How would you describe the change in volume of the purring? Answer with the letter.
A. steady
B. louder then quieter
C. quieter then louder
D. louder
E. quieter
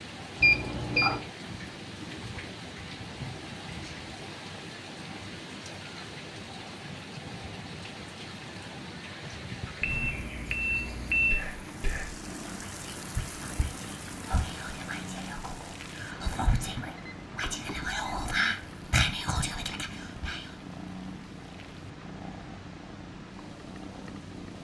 A.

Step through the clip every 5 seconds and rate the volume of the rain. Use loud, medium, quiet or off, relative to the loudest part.
loud, loud, loud, medium, quiet.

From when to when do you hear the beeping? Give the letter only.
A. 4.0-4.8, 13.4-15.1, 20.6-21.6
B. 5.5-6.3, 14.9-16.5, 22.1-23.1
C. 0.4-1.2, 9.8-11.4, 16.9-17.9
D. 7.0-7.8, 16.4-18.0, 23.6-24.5
C.